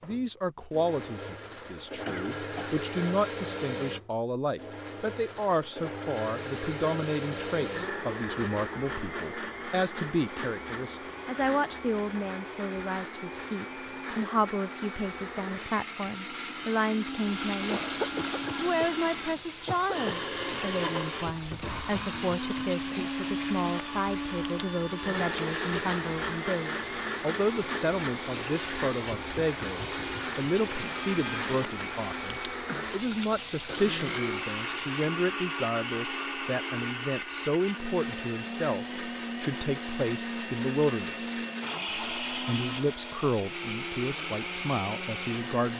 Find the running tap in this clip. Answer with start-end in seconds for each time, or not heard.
17.1-35.1.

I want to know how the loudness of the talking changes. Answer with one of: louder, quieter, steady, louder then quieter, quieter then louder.
steady.